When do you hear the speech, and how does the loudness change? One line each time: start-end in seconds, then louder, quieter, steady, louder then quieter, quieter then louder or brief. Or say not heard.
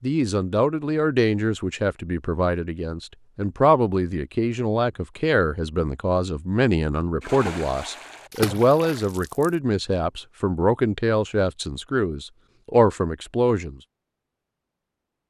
0.0-13.8 steady.